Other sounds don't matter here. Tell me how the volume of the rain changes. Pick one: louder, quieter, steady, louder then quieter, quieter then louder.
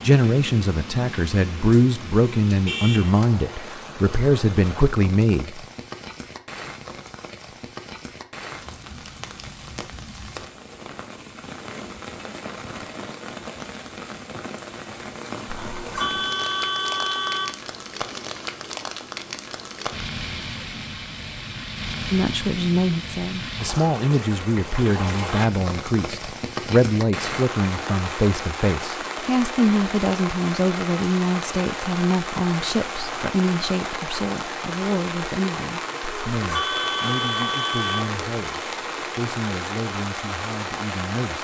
louder.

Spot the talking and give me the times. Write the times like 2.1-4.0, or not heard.
0.0-5.6, 22.1-41.3.